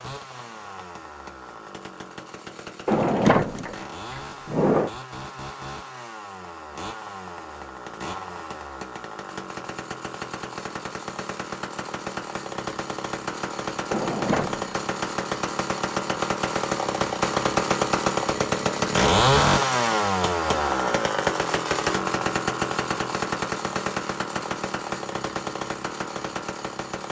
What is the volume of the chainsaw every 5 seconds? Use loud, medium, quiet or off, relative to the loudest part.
quiet, quiet, medium, loud, loud, medium.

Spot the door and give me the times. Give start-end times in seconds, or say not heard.
2.9-4.9, 13.9-14.7.